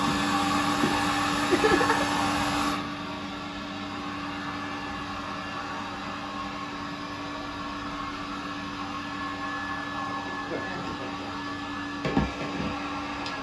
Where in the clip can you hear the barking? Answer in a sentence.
The barking can't be heard in this clip.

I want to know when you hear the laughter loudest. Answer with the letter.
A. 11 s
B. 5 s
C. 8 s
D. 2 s
D.